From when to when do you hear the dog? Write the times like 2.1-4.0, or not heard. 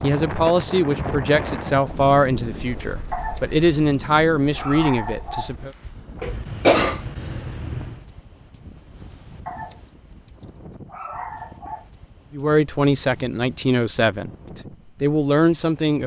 3.1-5.5, 9.4-11.8.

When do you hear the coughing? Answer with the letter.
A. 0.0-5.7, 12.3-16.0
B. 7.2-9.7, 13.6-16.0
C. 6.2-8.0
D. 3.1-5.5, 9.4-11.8
C.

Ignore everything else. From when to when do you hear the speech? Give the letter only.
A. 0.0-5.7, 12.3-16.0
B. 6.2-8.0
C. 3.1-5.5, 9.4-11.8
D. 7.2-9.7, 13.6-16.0
A.